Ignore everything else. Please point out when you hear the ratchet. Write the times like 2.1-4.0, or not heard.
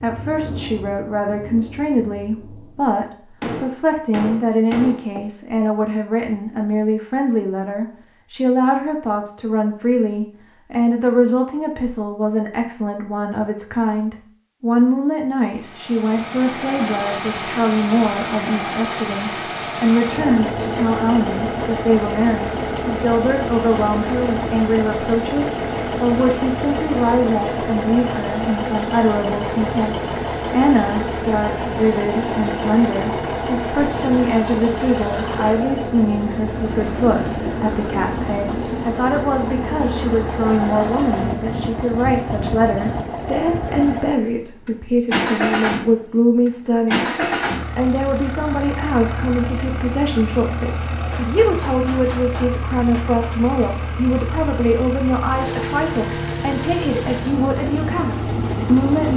not heard.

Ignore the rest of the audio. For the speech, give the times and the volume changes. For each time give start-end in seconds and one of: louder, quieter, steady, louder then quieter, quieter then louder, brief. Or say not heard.
0.0-59.1 steady.